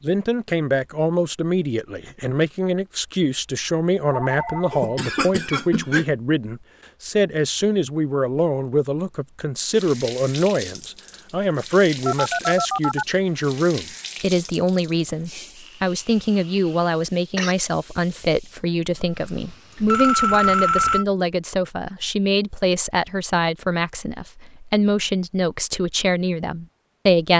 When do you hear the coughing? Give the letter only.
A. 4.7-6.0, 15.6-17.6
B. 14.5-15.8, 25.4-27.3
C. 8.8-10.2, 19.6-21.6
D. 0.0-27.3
A.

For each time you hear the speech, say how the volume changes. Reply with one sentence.
You can hear the speech from 0.0 to 27.3 s, at a steady volume.